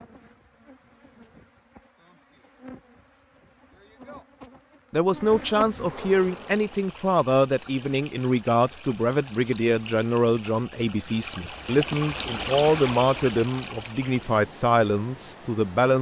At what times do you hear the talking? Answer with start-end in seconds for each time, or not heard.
4.9-15.9.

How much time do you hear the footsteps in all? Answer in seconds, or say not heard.
not heard.